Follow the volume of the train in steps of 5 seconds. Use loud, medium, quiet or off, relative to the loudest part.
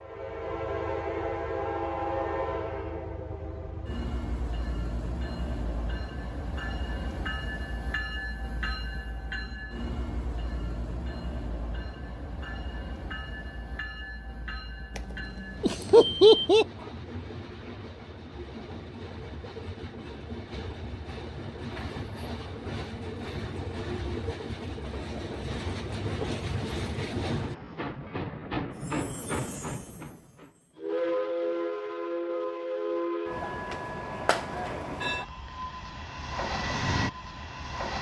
loud, medium, medium, medium, medium, loud, loud, loud.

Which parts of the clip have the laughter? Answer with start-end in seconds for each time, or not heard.
15.6-16.6.